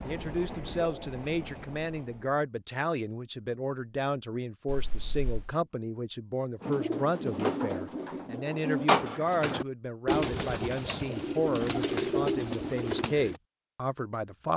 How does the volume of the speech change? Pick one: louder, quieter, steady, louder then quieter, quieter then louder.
steady.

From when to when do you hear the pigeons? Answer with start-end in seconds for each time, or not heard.
6.6-13.4.